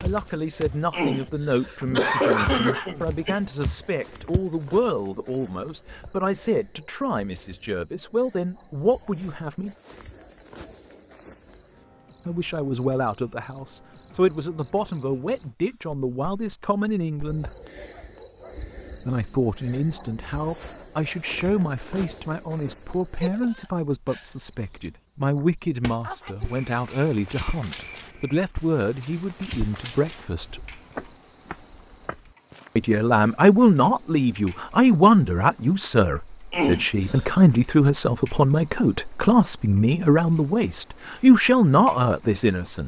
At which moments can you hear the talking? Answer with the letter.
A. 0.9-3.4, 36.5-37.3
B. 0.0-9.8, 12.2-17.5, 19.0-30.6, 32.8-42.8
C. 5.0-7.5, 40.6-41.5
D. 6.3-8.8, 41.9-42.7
B.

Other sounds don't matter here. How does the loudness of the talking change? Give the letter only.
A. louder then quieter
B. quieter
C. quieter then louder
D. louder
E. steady
D.